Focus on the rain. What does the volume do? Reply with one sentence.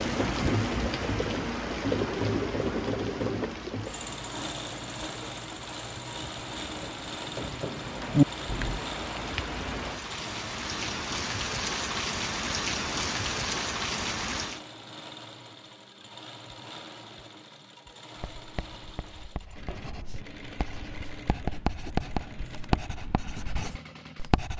The loudness of the rain goes down, then up.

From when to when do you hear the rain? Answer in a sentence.
The rain can be heard from 0.0 to 14.6 s.